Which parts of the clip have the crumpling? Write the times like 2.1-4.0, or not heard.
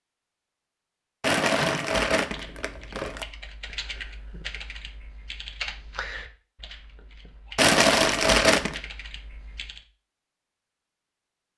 1.2-3.2, 7.5-8.8.